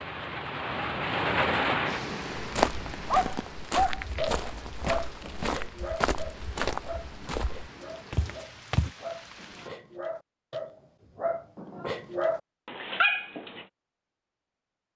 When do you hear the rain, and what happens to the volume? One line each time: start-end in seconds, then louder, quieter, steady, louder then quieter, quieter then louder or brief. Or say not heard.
0.0-9.7 quieter.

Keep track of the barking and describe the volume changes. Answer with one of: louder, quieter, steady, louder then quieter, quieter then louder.
quieter then louder.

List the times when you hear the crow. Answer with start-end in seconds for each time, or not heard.
not heard.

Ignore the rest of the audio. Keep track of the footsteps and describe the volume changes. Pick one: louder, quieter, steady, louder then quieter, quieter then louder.
steady.